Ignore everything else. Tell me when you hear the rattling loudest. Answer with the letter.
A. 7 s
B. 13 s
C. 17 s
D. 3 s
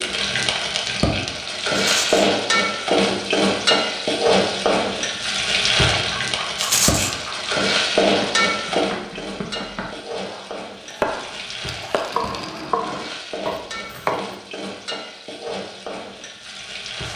A.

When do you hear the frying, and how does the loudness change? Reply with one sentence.
You can hear the frying from 0.0 to 17.1 s, getting quieter.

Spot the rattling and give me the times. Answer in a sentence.
You can hear the rattling from 1.7 to 2.3 s, from 6.5 to 7.2 s and from 11.9 to 12.7 s.